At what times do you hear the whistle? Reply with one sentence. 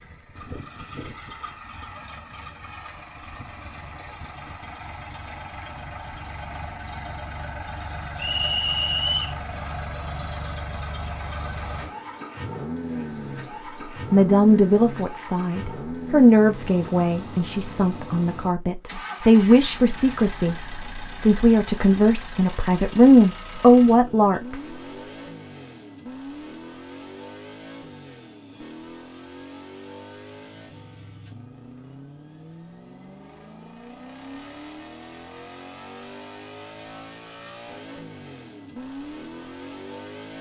You can hear the whistle from 8.2 to 9.3 s.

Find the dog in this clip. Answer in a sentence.
You can't hear the dog here.